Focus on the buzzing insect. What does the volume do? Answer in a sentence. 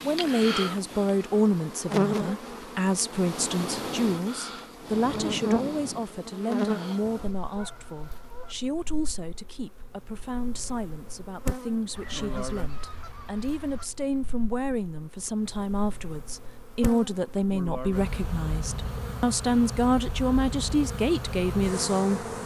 The volume of the buzzing insect goes down, then up.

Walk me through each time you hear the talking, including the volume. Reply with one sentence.
You can hear the talking from 0.0 to 22.4 s, getting quieter then louder.